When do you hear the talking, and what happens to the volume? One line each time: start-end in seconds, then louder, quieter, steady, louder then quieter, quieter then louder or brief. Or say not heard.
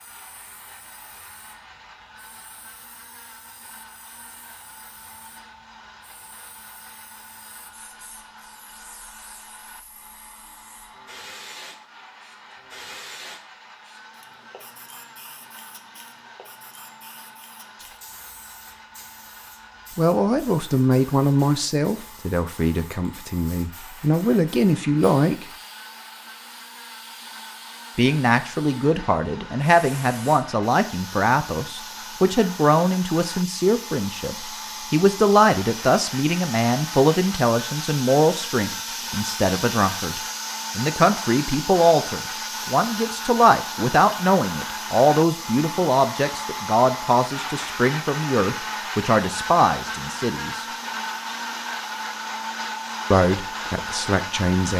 19.9-25.4 quieter then louder
27.9-50.6 steady
53.1-54.7 brief.